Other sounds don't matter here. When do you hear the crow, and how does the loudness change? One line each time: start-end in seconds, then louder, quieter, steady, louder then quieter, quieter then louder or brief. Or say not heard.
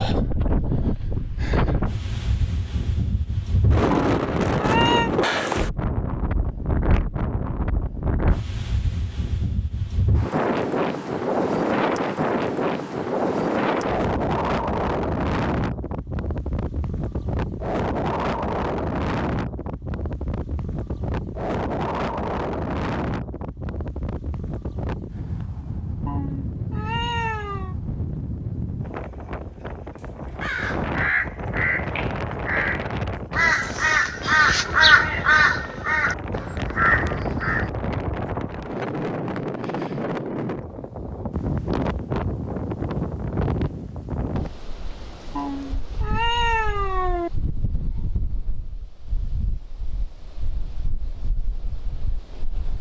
30.4-37.7 louder then quieter.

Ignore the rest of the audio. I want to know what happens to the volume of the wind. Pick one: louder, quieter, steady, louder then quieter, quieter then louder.
quieter.